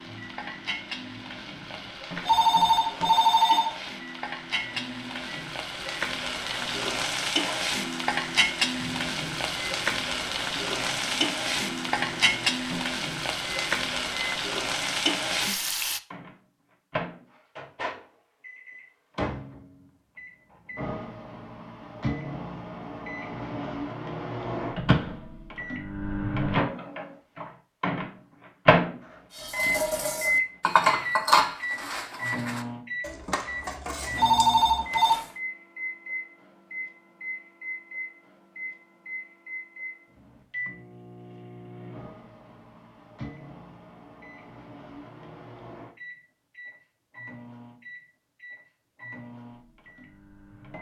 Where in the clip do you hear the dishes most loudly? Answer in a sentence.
The loudest moment of the dishes is at 31 seconds.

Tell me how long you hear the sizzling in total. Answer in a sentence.
The sizzling can be heard for 16 seconds in total.